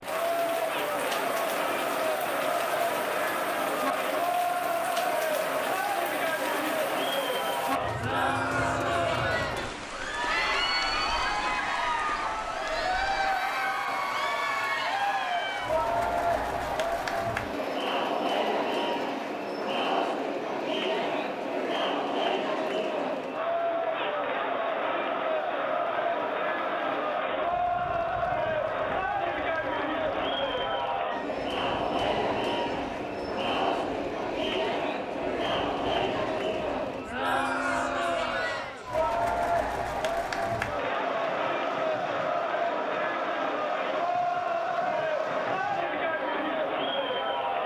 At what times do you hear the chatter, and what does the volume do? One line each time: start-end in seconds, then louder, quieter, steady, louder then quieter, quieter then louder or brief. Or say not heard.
0.0-47.6 steady.